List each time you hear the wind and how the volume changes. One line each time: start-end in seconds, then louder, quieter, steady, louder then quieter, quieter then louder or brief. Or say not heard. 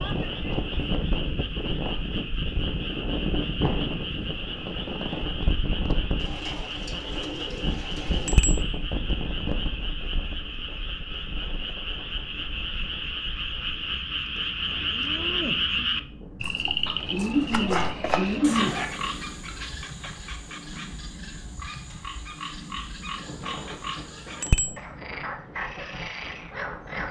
0.0-27.0 quieter.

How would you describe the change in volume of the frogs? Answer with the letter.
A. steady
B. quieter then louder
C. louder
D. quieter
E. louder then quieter
E.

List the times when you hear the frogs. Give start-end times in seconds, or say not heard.
0.0-27.0.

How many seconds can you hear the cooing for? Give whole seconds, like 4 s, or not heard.
4 s.